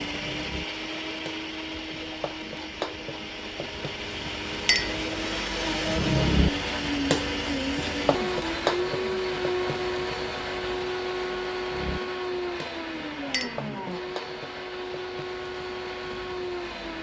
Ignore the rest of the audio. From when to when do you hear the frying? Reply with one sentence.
The frying can be heard from 0.0 to 16.9 s.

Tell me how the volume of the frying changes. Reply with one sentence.
The loudness of the frying goes up, then down.